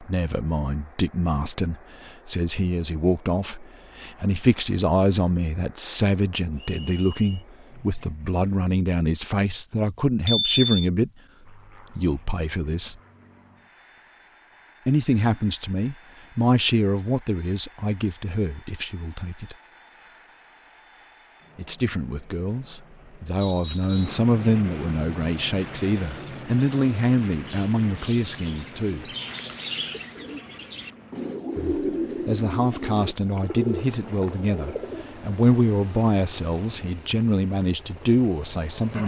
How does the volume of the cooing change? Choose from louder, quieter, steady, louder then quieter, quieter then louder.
louder.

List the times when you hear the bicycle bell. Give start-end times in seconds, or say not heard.
10.2-10.8.